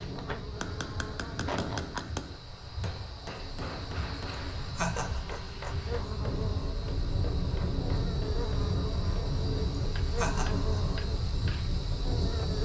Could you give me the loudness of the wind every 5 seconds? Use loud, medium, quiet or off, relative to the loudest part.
medium, loud, loud.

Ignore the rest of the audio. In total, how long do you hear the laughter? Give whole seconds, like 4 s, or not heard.
2 s.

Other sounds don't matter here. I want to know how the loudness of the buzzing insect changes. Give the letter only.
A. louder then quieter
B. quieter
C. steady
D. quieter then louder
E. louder
E.